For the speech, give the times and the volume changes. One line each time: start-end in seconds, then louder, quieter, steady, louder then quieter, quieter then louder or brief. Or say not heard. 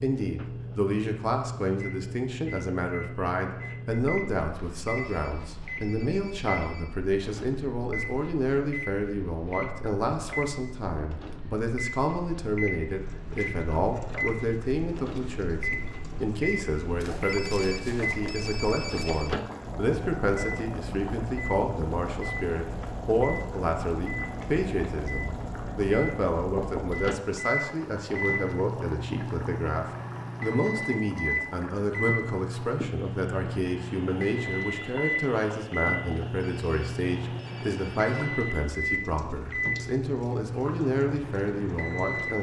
0.0-42.3 steady.